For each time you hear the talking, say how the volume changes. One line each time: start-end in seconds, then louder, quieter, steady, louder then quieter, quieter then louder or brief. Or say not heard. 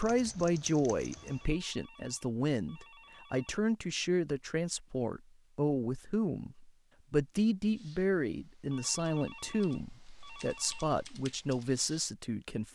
0.0-12.6 steady.